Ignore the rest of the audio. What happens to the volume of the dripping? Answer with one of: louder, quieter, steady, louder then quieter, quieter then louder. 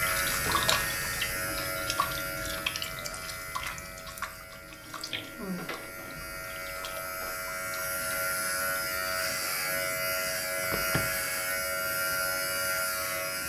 quieter.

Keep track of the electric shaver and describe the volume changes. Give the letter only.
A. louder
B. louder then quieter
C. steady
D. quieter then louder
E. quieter
D.